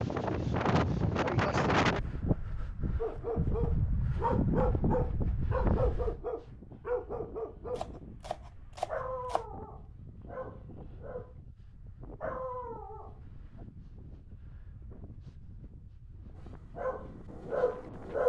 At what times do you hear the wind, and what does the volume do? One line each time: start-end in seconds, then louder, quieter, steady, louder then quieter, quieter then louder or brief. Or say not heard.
0.0-18.2 quieter.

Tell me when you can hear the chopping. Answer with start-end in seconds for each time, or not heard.
7.8-9.4.